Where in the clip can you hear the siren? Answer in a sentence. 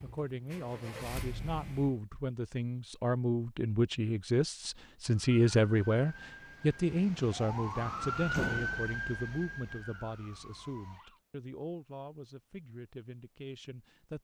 The siren can be heard from 5.0 to 11.2 s.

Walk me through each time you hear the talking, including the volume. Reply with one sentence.
You can hear the talking from 0.0 to 14.1 s, getting louder then quieter.